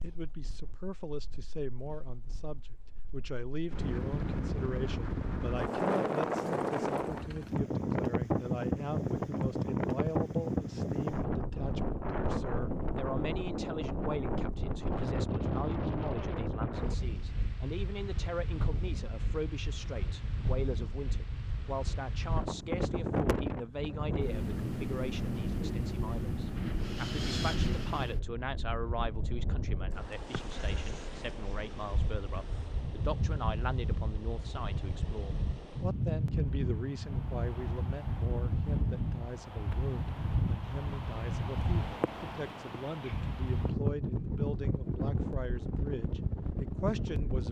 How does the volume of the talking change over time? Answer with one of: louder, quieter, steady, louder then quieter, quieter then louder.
steady.